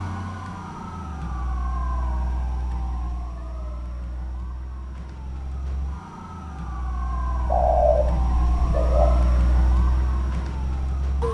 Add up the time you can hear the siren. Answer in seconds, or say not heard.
11 s.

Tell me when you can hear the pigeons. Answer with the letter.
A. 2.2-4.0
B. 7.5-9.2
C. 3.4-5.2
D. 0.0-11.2
B.